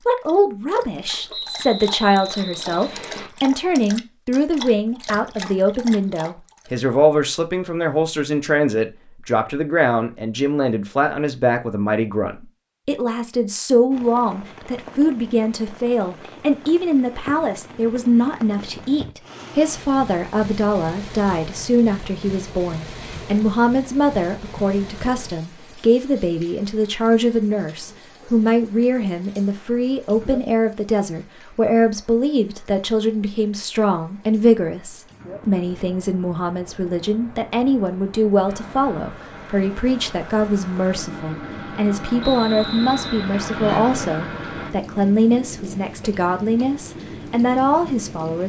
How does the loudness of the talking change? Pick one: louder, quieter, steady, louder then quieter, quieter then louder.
steady.